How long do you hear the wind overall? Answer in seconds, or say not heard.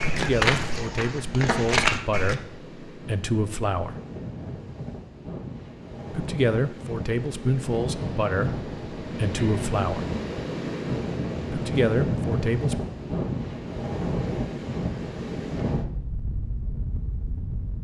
18 s.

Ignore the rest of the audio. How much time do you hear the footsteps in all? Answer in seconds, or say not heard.
2 s.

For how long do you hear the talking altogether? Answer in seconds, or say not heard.
9 s.